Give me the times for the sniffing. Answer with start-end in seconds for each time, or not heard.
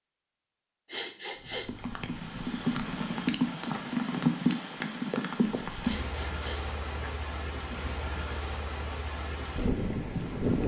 0.8-1.8, 5.8-7.1.